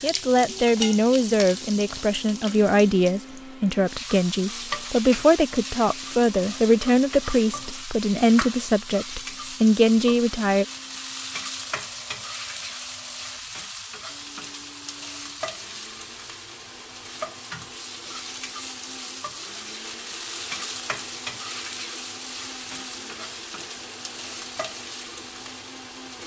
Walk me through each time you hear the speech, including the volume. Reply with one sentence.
You can hear the speech from 0.0 to 10.7 s, at a steady volume.